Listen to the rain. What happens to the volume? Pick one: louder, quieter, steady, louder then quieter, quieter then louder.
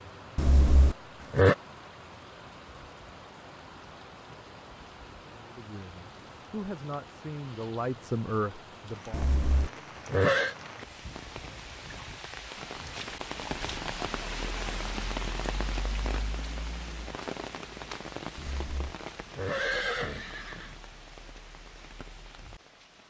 louder then quieter.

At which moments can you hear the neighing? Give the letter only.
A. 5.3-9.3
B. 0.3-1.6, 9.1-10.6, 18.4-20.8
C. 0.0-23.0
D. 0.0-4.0
B.